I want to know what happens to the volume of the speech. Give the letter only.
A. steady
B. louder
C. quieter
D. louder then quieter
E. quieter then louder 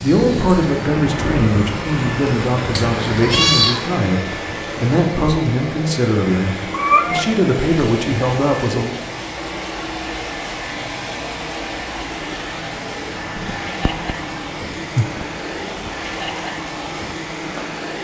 A.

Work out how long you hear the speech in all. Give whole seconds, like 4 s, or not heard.
9 s.